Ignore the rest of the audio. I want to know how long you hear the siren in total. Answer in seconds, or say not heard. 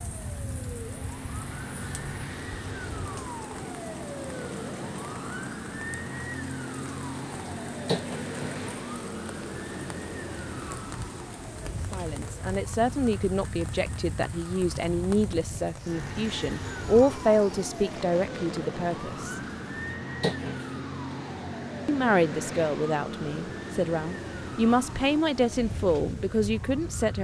27 s.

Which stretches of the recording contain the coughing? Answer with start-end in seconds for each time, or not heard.
7.8-8.5, 20.2-20.8.